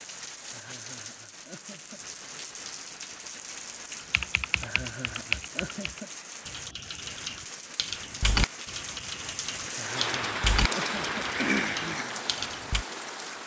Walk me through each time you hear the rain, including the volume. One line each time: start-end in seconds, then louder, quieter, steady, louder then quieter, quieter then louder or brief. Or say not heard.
0.0-13.4 louder.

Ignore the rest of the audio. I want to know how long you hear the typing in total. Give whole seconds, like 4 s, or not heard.
9 s.